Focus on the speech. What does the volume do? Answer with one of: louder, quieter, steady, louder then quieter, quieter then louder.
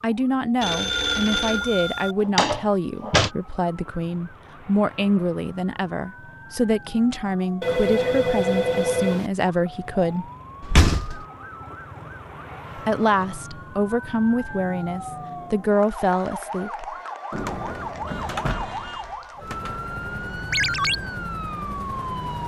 steady.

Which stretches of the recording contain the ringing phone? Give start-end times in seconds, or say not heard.
0.6-2.1, 7.6-9.3, 20.5-20.9.